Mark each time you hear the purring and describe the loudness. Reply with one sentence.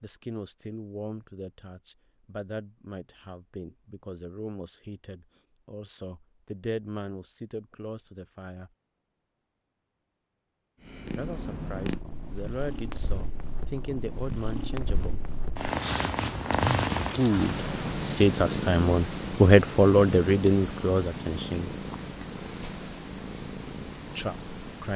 You can hear the purring from 10.8 to 24.9 s, getting louder then quieter.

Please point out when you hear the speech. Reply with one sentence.
The speech can be heard from 0.0 to 8.7 s, from 11.2 to 15.2 s, from 17.0 to 21.7 s and from 24.1 to 24.9 s.